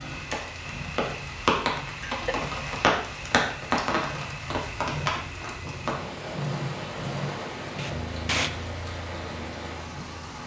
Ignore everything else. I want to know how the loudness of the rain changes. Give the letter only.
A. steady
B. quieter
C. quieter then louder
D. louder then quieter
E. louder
B.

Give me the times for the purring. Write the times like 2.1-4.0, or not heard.
0.0-10.4.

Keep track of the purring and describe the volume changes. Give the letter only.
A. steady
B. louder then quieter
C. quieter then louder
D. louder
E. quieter
B.